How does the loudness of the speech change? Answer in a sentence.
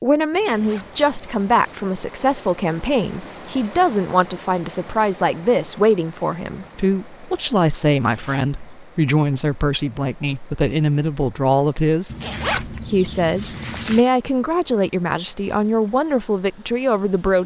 The volume of the speech stays about the same.